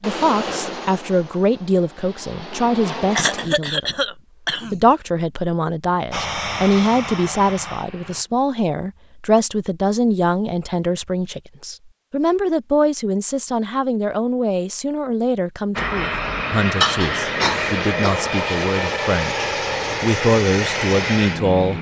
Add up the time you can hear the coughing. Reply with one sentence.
The coughing can be heard for 3 seconds in total.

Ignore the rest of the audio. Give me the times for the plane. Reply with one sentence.
You can hear the plane from 0.0 to 3.5 s, from 6.1 to 8.2 s and from 15.8 to 21.7 s.